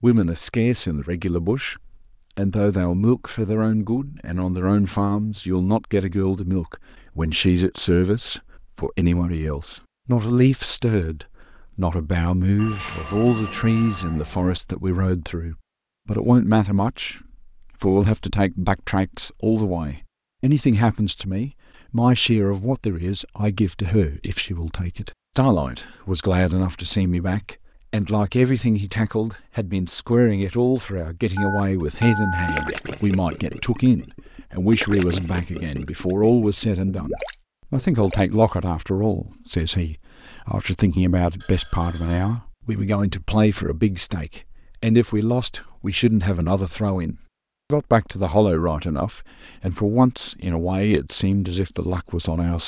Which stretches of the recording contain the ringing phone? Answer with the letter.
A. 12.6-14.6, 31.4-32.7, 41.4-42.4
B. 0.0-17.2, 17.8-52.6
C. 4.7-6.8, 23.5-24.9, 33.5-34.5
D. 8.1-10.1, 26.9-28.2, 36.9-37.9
A.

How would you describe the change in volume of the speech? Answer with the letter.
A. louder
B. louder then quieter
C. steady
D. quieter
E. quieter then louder
C.